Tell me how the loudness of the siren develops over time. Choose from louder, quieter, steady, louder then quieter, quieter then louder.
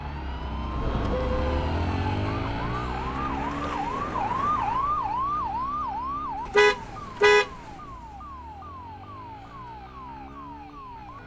louder then quieter.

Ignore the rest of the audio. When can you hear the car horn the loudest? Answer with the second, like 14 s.
7 s.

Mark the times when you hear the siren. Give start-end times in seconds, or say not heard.
0.0-11.2.